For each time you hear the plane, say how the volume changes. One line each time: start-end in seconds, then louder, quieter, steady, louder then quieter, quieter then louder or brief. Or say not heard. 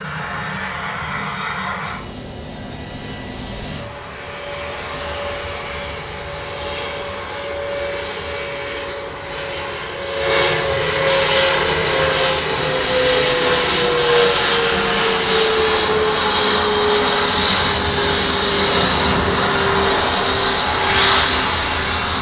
0.0-22.1 louder.